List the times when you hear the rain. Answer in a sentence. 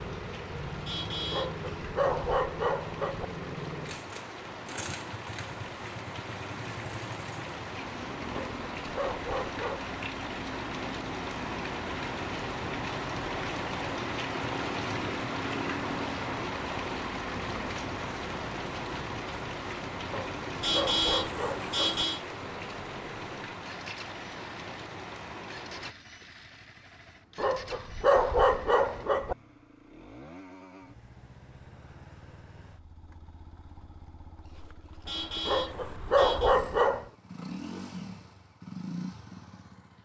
The rain can be heard from 0.0 to 25.9 s.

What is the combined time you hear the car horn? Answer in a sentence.
The car horn can be heard for 4 seconds in total.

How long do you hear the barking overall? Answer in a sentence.
The barking can be heard for 9 seconds in total.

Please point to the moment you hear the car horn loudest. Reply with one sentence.
The volume of the car horn peaks at 21 seconds.